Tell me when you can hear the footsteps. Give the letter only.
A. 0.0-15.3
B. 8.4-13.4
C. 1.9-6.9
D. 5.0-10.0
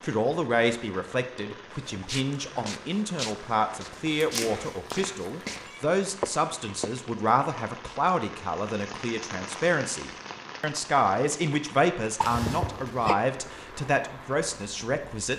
C.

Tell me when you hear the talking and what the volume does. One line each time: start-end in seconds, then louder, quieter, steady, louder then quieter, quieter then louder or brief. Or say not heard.
0.0-15.3 steady.